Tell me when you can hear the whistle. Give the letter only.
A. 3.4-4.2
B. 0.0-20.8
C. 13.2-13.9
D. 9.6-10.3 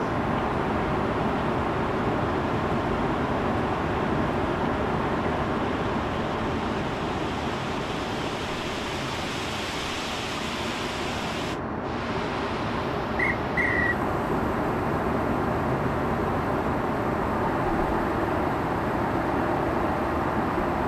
C.